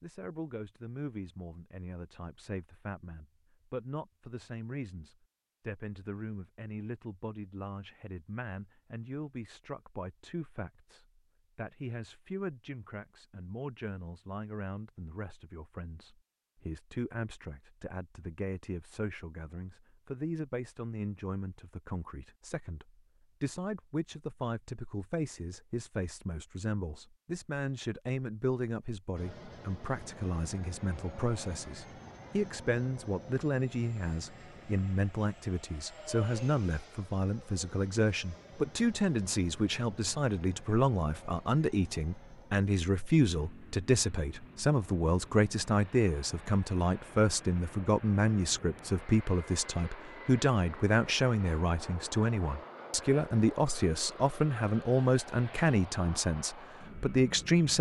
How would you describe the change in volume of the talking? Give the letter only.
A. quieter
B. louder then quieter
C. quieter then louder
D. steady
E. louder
E.